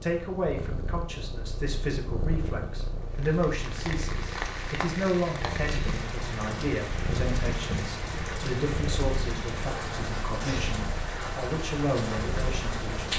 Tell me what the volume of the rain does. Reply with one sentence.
The loudness of the rain stays about the same.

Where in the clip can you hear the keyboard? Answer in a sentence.
The keyboard can't be heard in this clip.